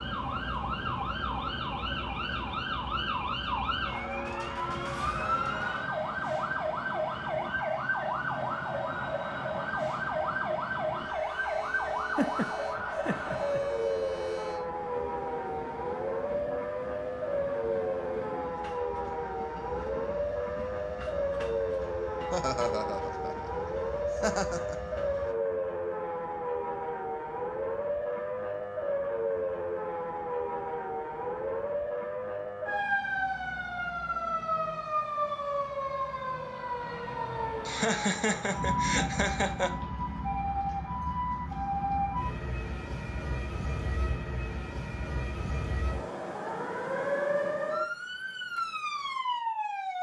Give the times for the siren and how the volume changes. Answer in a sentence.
You can hear the siren from 0.0 to 49.9 s, at a steady volume.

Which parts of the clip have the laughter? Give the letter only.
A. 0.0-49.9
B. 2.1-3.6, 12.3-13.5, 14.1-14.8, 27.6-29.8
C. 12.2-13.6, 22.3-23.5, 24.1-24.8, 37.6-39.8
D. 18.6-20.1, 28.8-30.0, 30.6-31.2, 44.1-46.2
C.